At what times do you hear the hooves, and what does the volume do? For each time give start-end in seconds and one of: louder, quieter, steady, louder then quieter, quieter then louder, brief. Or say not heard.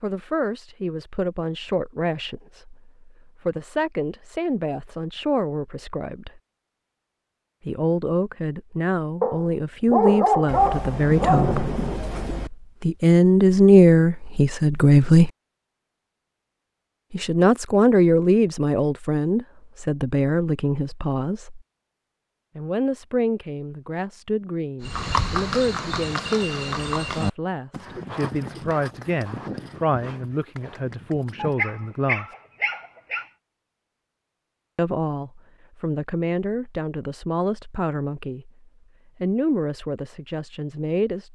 24.8-31.8 quieter.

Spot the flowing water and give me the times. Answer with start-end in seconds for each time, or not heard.
not heard.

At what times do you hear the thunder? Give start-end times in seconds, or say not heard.
10.4-12.5.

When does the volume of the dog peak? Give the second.
10 s.